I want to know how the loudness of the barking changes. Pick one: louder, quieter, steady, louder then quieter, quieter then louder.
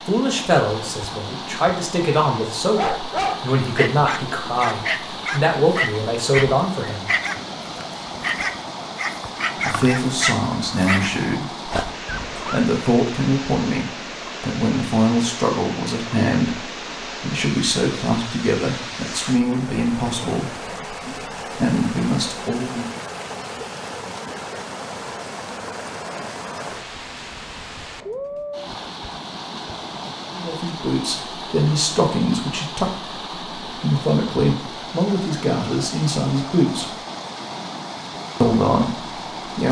steady.